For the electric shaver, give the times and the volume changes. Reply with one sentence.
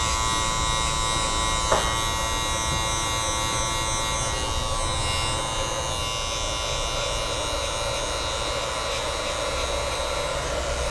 You can hear the electric shaver from 0.0 to 10.8 s, getting quieter.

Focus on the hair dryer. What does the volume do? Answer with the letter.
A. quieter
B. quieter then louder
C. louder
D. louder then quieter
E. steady
C.